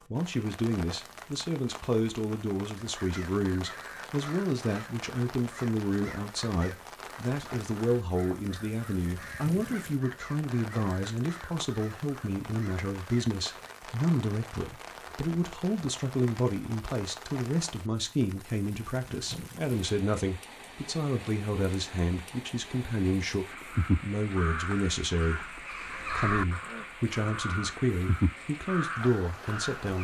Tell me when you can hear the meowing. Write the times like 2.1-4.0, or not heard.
not heard.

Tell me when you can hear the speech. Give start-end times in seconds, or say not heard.
0.1-25.5, 26.1-29.9.